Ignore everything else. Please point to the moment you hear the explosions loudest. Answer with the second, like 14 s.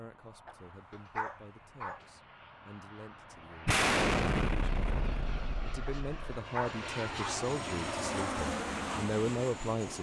4 s.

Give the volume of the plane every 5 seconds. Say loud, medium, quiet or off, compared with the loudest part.
quiet, loud.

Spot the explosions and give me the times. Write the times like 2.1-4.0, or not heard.
3.6-6.4.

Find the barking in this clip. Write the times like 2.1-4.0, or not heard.
0.5-2.0, 5.8-7.5.